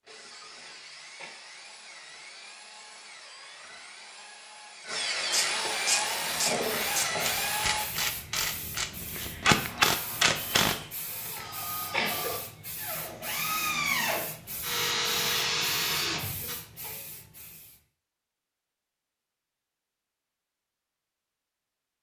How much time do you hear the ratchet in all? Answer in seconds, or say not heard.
6 s.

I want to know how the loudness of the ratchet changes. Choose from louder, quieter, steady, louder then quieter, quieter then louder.
louder.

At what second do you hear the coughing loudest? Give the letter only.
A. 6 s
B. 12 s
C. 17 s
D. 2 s
B.